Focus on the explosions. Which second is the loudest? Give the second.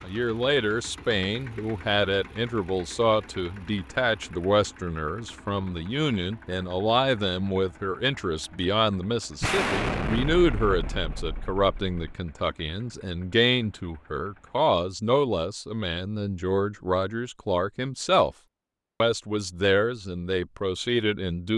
10 s.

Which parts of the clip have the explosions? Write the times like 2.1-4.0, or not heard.
9.4-12.2.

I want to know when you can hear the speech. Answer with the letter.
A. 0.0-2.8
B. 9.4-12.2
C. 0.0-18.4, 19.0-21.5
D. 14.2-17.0
C.